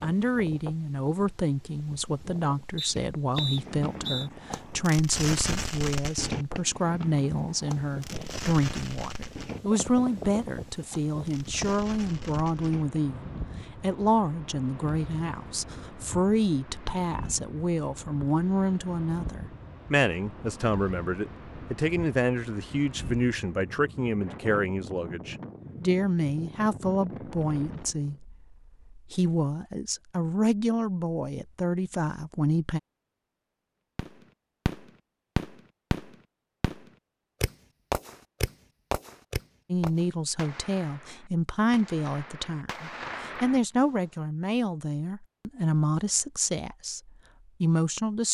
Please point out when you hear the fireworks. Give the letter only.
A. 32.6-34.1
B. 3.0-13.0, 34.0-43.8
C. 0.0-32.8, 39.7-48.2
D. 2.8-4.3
B.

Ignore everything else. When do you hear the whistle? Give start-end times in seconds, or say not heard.
2.8-4.3.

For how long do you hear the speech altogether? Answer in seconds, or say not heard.
41 s.